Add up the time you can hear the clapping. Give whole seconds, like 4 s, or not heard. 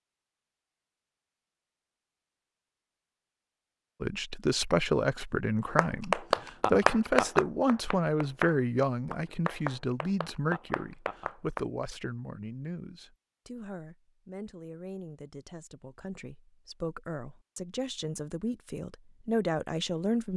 6 s.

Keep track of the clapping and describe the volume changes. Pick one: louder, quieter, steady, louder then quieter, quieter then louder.
quieter.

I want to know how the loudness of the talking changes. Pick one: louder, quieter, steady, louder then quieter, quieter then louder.
quieter then louder.